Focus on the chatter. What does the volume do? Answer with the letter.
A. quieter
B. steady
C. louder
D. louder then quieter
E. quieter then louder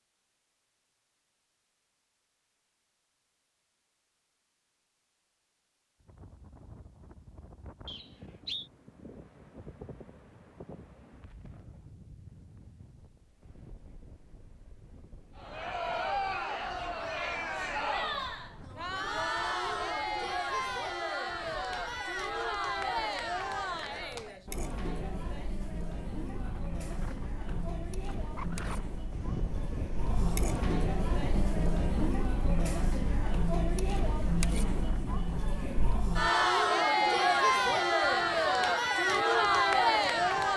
E.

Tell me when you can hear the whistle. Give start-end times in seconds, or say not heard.
7.8-8.7.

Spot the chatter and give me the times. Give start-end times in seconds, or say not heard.
15.3-40.5.